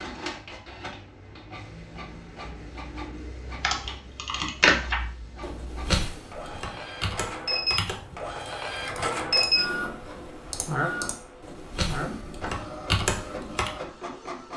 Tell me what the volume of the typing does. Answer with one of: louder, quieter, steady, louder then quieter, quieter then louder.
quieter then louder.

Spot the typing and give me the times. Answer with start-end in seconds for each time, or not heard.
3.6-13.7.